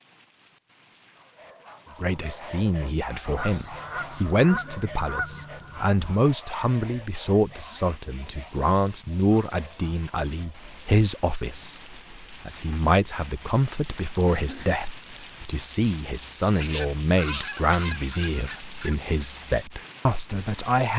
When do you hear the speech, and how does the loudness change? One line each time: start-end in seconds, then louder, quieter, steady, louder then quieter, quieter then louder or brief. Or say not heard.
2.0-20.9 steady.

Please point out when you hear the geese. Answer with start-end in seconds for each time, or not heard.
3.4-5.9, 16.4-19.1.